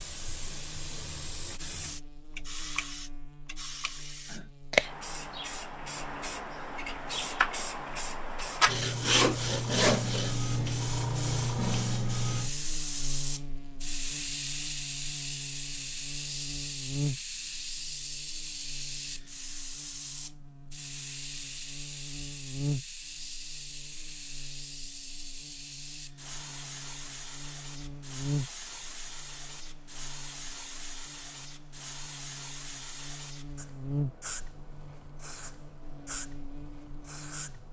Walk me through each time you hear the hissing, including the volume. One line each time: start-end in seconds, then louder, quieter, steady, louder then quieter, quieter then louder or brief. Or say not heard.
0.0-37.6 quieter.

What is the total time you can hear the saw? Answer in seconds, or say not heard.
2 s.